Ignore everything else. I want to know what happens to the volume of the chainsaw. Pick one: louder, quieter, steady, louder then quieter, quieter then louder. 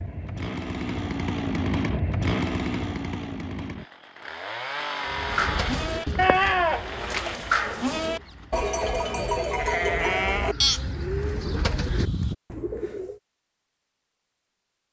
quieter.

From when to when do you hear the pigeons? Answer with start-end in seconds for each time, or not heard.
5.0-13.2.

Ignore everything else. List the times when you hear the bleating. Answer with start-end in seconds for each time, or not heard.
5.3-12.3.